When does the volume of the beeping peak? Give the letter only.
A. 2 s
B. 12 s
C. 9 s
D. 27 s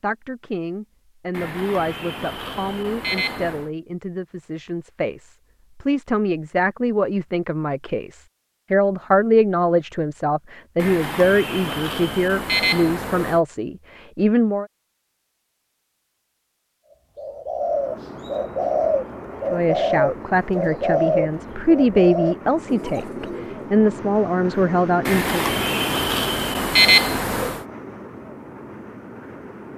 D.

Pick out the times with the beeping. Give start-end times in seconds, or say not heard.
1.3-3.7, 10.8-13.4, 25.1-27.6.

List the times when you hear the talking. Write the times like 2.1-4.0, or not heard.
0.0-14.7, 19.5-25.4.